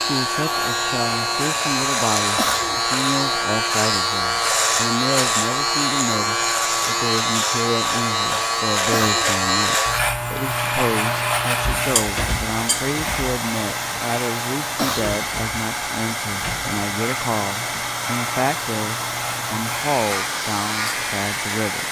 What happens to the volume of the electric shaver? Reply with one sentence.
The volume of the electric shaver goes down.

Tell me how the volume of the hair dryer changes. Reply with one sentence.
The volume of the hair dryer stays about the same.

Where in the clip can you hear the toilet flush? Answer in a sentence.
The toilet flush can't be heard in this clip.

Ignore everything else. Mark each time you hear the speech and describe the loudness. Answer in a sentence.
The speech can be heard from 0.0 to 21.8 s, at a steady volume.